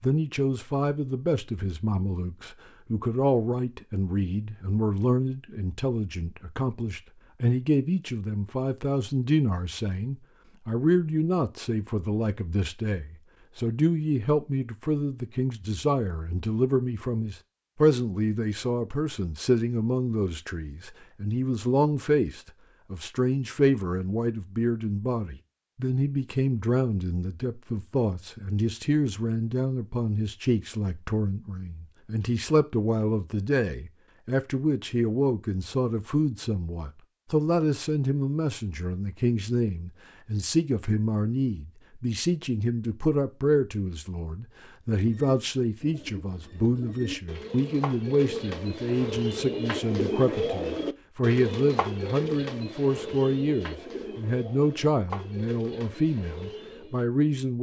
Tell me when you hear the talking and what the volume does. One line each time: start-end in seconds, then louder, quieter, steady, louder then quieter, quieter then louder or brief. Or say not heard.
0.0-57.5 steady.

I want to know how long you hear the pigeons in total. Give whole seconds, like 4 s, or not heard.
12 s.